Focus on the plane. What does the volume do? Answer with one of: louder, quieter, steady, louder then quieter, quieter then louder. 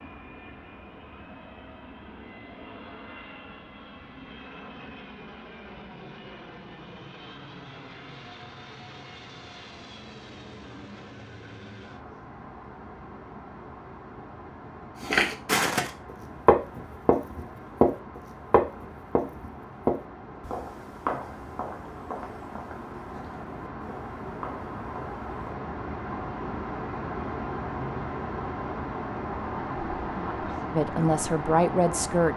louder.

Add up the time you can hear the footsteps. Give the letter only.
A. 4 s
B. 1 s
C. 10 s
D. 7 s
C.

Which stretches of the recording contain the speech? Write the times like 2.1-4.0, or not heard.
30.1-32.3.